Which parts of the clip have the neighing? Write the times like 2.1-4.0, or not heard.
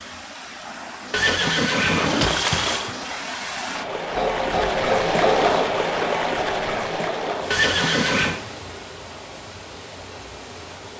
1.1-3.0, 7.5-8.4.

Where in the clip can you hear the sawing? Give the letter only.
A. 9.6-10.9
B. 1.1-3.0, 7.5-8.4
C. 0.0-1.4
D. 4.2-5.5
D.